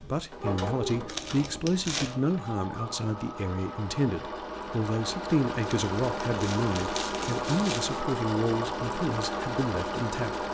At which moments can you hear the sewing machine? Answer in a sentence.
The sewing machine can be heard from 0.0 to 10.4 s.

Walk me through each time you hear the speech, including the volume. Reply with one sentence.
The speech can be heard from 0.0 to 10.4 s, at a steady volume.